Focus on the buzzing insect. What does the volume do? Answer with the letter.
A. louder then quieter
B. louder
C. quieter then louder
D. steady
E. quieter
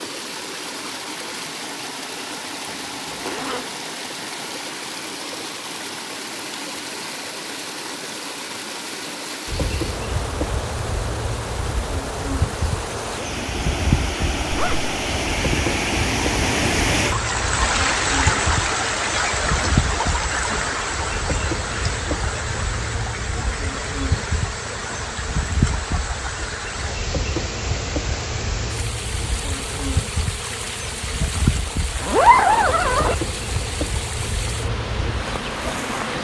D.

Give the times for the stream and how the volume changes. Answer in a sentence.
You can hear the stream from 0.0 to 36.1 s, getting louder then quieter.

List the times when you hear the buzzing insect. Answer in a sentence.
You can hear the buzzing insect from 9.4 to 36.1 s.